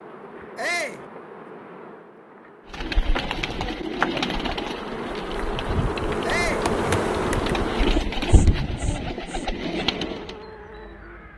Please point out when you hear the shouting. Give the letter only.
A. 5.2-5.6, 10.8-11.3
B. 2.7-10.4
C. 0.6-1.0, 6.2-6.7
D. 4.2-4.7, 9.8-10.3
C.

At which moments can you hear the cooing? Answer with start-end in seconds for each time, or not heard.
2.7-10.4.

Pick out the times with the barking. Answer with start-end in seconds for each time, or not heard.
not heard.